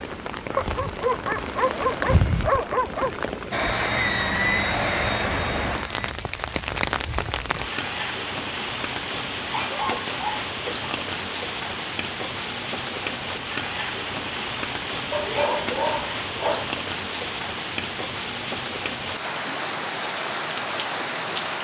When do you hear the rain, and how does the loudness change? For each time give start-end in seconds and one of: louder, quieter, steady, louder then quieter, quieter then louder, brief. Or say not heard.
0.0-21.5 steady.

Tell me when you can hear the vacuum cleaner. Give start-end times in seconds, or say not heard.
3.5-6.2.